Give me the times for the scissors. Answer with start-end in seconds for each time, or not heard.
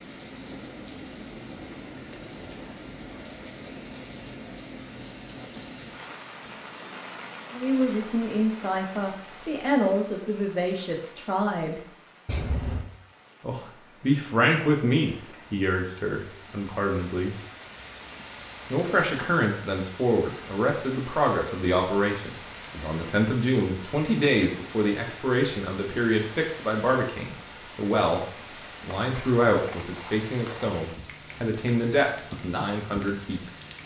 1.9-2.8, 12.2-12.9, 29.1-30.7.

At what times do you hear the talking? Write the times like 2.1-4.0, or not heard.
7.5-11.8, 13.4-17.4, 18.7-33.5.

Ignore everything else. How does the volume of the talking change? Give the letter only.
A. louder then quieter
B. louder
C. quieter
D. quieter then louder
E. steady
E.